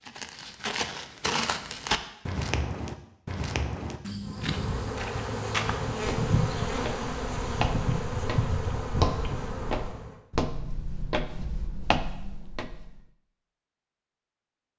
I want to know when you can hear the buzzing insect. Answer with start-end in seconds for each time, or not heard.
4.2-10.2.